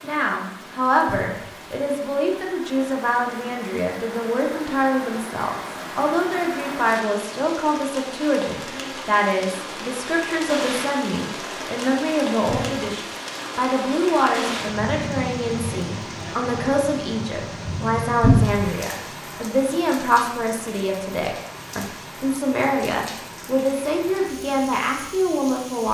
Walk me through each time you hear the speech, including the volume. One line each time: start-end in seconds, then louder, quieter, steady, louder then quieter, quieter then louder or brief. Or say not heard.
0.0-25.8 steady.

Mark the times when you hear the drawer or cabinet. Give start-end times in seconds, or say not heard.
1.1-1.6, 12.4-12.9, 18.2-18.8.